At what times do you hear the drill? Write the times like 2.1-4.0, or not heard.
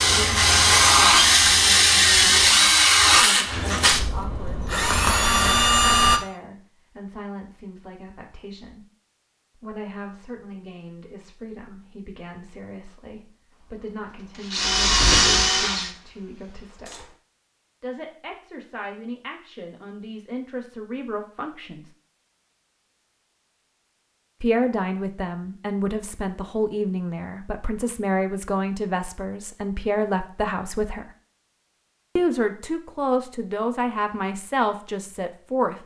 0.0-6.2, 13.7-17.1.